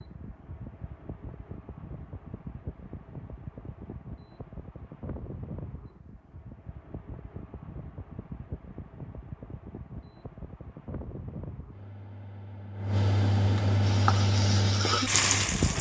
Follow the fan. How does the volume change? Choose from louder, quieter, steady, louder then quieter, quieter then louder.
louder.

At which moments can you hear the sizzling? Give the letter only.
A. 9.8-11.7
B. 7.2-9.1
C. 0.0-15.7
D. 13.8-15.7
D.